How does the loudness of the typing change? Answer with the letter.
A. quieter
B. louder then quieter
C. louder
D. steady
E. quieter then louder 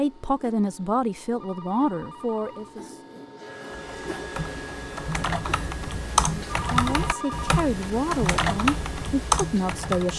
C.